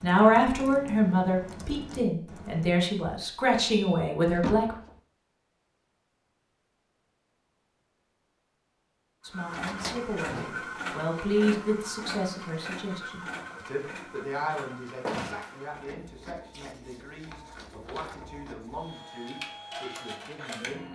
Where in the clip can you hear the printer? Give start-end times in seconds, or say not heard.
9.2-20.8.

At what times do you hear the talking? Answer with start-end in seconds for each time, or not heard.
0.0-4.8, 9.2-20.8.